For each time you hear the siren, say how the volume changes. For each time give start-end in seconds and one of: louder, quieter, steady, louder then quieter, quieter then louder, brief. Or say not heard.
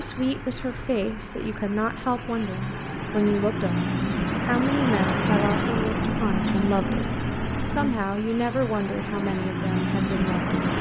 not heard.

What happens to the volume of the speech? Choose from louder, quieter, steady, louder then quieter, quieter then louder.
steady.